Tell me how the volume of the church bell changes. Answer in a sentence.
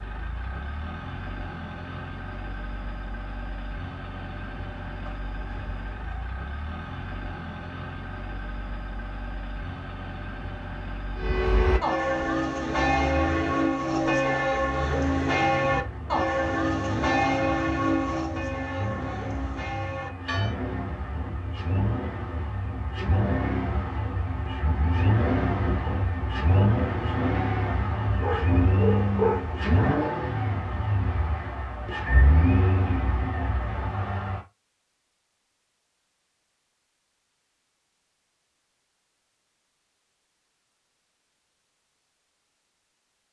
The volume of the church bell goes down.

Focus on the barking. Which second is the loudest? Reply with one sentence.
The volume of the barking peaks at 29 seconds.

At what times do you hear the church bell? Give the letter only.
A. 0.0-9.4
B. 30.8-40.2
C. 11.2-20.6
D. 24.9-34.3
C.